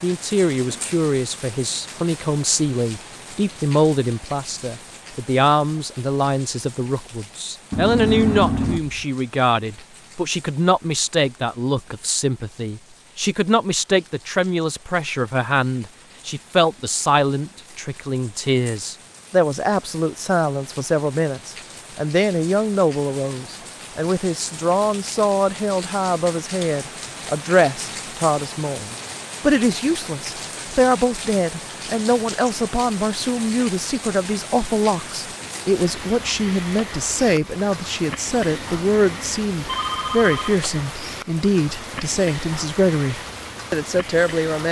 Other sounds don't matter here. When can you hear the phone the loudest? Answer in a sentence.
The loudest moment of the phone is at 8 seconds.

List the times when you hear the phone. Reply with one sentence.
You can hear the phone from 7.7 to 9.0 s and from 38.5 to 40.5 s.